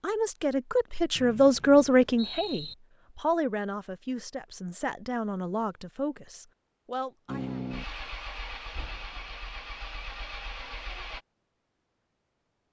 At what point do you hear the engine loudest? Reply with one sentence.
The loudest moment of the engine is at 8 seconds.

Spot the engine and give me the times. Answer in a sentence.
You can hear the engine from 7.2 to 11.2 s.